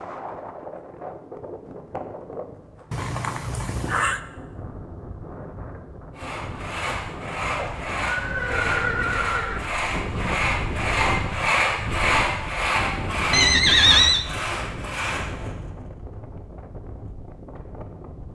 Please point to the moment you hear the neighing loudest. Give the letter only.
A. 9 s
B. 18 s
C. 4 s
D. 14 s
D.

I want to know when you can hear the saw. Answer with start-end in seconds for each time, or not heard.
6.2-15.6.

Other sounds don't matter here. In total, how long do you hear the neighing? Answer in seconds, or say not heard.
4 s.